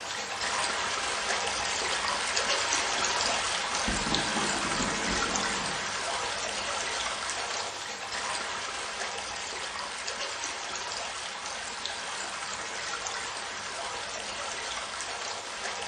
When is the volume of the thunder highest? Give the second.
4 s.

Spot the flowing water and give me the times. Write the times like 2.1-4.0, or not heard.
0.0-15.8.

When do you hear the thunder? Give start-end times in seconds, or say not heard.
2.8-5.8.